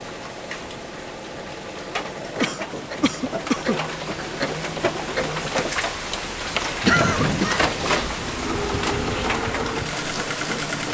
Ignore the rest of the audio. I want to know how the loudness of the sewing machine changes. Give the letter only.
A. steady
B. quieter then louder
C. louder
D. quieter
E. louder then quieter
C.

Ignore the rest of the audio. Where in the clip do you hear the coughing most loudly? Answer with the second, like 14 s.
7 s.